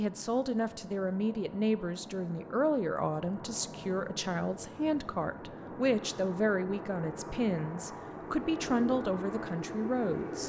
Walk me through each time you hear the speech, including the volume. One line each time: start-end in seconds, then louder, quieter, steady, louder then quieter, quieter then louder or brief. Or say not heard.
0.0-10.4 steady.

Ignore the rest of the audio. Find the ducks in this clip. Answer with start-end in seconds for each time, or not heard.
not heard.